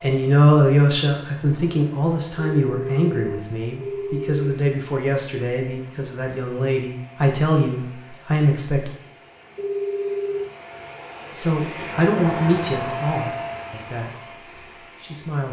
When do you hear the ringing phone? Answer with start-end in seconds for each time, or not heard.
2.4-4.5, 9.6-10.5.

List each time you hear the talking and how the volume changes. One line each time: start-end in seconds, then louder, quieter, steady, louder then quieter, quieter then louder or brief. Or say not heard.
0.0-8.9 quieter then louder
11.3-14.2 brief
15.0-15.4 brief.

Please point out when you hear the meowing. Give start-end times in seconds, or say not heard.
not heard.